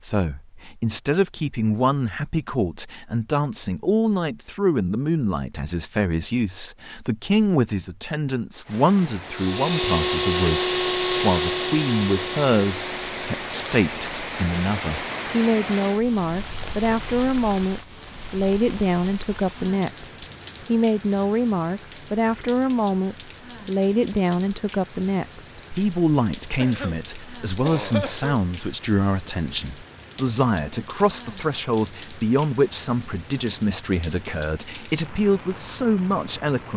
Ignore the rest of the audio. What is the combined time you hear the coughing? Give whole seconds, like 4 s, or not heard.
2 s.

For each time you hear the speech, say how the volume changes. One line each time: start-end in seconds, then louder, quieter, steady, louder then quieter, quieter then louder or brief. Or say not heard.
0.0-36.7 steady.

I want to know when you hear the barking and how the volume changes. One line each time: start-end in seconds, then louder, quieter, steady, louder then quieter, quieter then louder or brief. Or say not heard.
not heard.